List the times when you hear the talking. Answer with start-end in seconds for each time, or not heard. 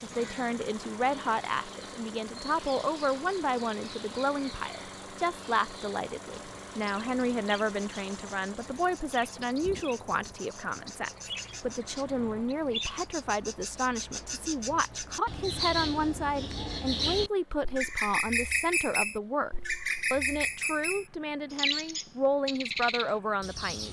0.0-23.8.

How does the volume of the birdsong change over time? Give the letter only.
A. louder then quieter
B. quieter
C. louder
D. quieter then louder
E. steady
C.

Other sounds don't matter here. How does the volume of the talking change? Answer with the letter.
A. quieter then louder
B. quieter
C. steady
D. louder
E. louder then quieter
C.